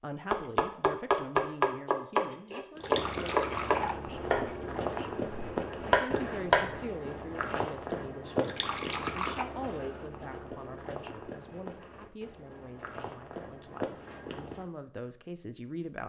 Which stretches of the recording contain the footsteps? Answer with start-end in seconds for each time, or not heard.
2.8-14.7.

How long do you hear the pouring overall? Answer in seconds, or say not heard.
2 s.